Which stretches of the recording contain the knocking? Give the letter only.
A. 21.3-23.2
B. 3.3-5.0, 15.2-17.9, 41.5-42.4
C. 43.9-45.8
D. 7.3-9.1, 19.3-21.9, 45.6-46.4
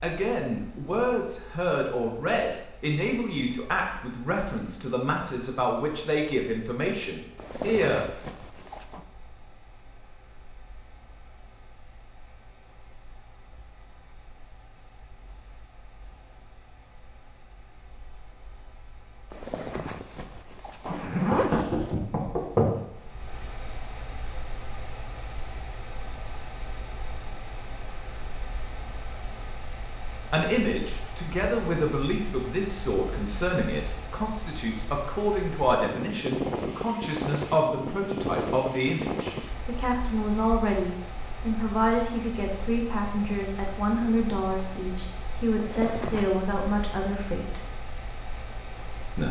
A.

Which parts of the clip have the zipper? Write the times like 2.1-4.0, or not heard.
7.3-9.1, 19.3-21.9, 45.6-46.4.